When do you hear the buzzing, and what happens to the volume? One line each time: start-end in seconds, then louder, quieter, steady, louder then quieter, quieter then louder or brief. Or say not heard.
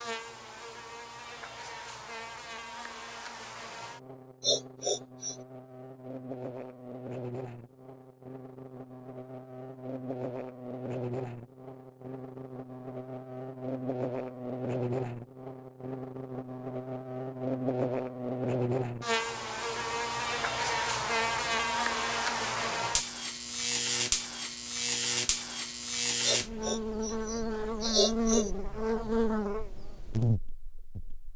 0.0-31.3 louder.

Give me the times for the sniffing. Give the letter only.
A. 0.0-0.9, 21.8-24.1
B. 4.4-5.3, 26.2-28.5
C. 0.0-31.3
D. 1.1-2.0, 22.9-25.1
B.